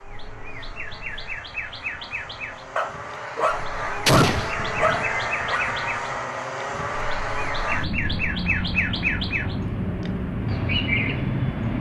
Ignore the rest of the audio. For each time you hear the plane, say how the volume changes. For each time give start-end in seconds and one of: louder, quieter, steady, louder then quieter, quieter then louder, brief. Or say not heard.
0.0-11.7 louder.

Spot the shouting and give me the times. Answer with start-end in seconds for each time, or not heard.
not heard.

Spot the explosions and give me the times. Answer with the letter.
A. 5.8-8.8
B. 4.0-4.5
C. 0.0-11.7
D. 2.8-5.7
B.